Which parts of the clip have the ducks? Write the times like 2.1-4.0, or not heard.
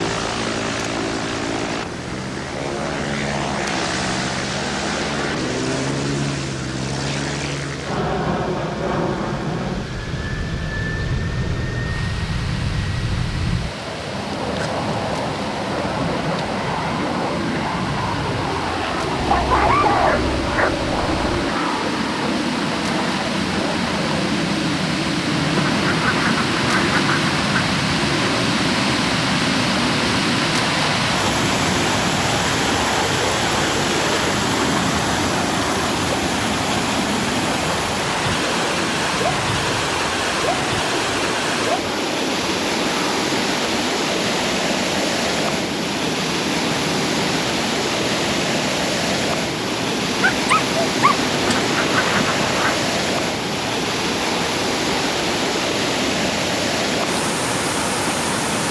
25.3-27.7, 51.2-52.8.